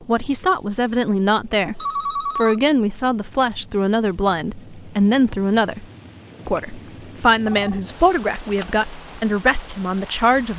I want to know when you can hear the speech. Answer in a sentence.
You can hear the speech from 0.1 to 5.8 s and from 6.5 to 10.5 s.